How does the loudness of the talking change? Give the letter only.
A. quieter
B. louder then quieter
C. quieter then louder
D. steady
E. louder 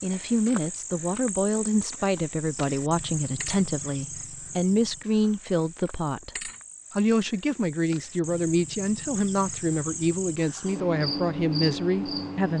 D.